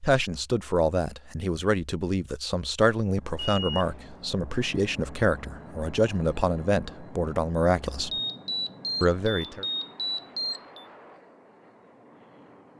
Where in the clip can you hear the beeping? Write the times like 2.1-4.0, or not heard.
3.4-4.0, 8.1-10.8.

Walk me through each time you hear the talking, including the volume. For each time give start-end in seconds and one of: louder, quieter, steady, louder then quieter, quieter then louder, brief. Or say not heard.
0.0-8.1 steady
9.0-9.7 brief.